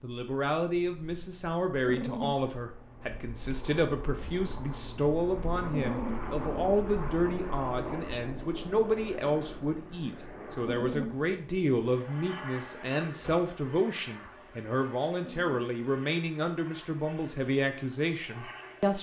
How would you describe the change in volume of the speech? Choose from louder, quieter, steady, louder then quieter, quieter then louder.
steady.